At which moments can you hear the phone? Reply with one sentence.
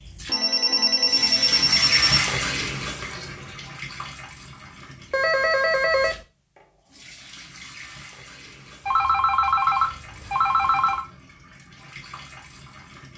The phone can be heard from 0.2 to 2.2 s, from 5.1 to 6.2 s and from 8.8 to 11.1 s.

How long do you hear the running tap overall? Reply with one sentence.
The running tap can be heard for 13 seconds in total.